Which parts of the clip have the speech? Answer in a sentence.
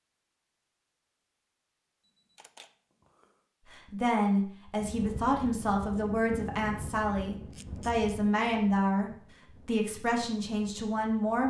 You can hear the speech from 3.7 to 11.4 s.